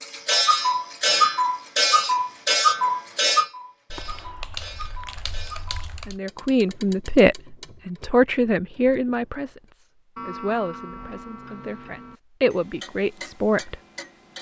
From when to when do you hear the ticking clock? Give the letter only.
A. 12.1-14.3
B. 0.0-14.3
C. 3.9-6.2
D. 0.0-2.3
B.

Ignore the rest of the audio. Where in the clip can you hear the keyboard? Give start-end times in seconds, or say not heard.
3.9-6.2.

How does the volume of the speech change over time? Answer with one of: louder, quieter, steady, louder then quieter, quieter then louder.
quieter then louder.